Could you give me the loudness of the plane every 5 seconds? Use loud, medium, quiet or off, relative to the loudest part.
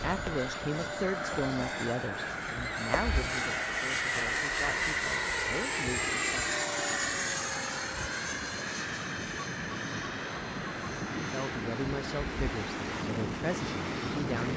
loud, loud, medium.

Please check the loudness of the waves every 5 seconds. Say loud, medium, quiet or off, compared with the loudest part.
medium, medium, loud.